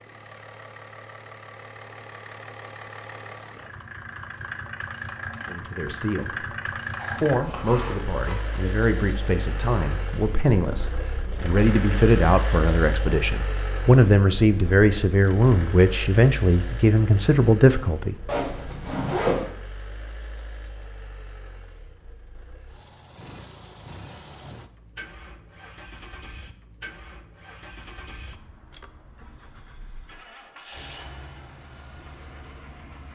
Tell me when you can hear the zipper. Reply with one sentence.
The zipper can be heard from 7.0 to 8.7 s and from 18.2 to 19.4 s.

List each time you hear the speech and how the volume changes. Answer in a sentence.
You can hear the speech briefly from 5.5 to 6.5 s; and from 7.2 to 18.1 s, getting louder.